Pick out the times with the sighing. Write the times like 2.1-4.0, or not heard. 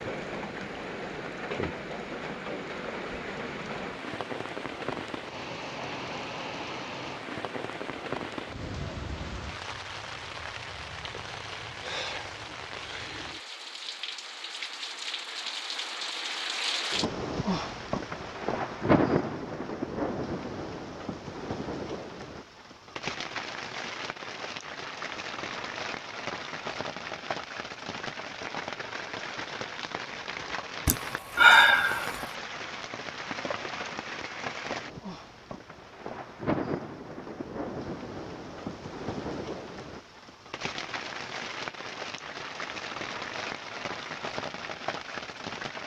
30.9-32.2.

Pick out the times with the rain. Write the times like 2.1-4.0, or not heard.
0.0-45.8.